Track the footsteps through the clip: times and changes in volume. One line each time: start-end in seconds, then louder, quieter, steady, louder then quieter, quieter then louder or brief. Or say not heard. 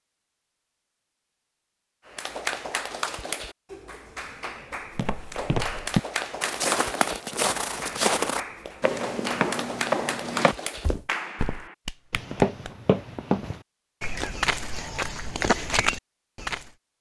5.0-16.7 steady.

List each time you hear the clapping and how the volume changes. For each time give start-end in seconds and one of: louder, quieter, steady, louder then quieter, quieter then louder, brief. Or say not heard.
2.0-12.7 steady.